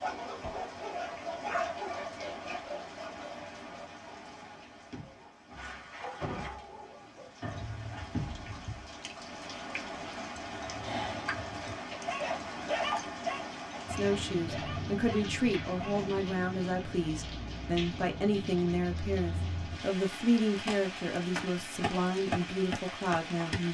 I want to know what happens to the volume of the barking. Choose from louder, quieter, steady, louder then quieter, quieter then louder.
quieter then louder.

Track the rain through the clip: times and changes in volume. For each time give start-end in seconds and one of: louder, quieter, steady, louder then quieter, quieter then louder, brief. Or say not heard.
0.0-23.6 louder.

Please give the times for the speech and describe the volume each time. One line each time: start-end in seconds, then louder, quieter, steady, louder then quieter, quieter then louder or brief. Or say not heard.
13.9-23.6 steady.